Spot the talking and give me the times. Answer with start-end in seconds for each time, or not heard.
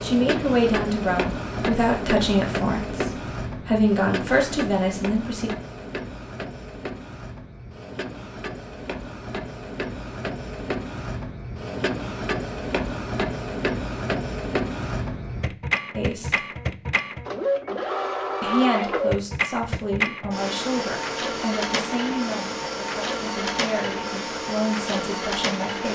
0.0-5.5, 15.9-16.4, 18.4-25.9.